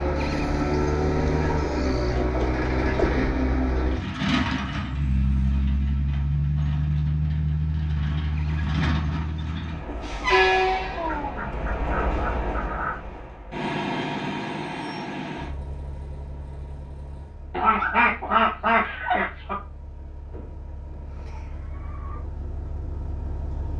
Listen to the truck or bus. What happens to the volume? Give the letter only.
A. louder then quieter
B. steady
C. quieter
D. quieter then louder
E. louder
C.